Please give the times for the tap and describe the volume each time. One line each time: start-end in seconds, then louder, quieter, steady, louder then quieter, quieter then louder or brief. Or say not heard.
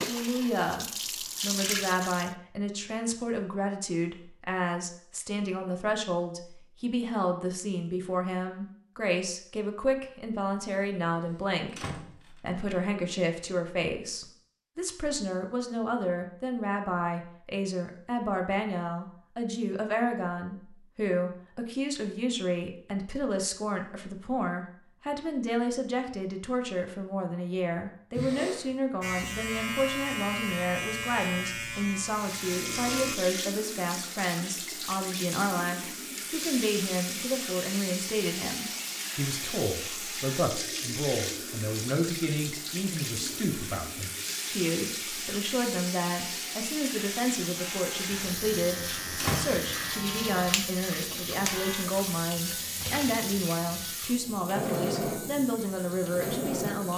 0.0-2.4 brief
31.9-56.9 steady.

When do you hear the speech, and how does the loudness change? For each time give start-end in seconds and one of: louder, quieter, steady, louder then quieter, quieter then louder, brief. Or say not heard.
0.1-56.9 steady.